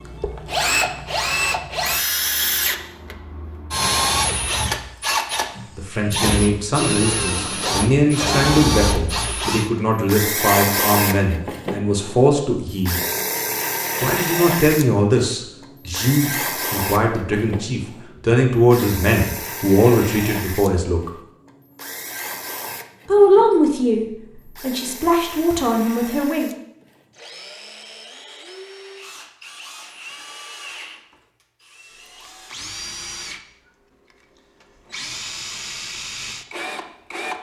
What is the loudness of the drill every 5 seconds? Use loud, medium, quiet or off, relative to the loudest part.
loud, loud, loud, medium, quiet, quiet, quiet, medium.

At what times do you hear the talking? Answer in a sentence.
The talking can be heard from 5.8 to 13.0 s, from 14.0 to 21.1 s and from 23.1 to 26.5 s.